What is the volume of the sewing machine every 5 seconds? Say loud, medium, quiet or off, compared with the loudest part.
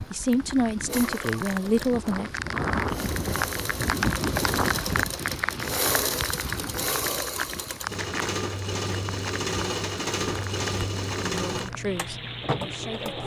medium, loud, loud.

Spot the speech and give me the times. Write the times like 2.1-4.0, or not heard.
0.0-2.3, 11.2-13.2.